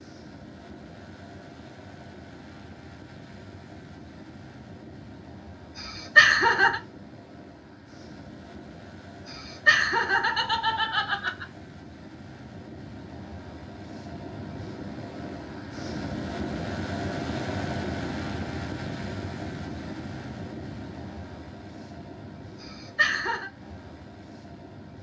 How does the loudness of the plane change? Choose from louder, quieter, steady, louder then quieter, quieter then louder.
louder then quieter.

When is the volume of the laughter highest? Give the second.
6 s.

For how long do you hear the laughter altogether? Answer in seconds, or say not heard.
4 s.